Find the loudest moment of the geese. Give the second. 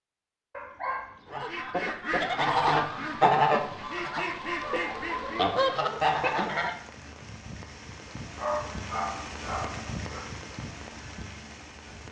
3 s.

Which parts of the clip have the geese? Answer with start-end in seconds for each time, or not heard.
1.3-6.8.